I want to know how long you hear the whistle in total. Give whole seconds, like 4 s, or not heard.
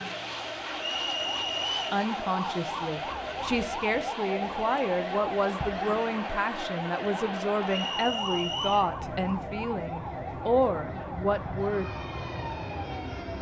2 s.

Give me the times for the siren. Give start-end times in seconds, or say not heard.
0.0-13.3.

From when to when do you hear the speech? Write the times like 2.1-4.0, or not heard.
1.9-11.9.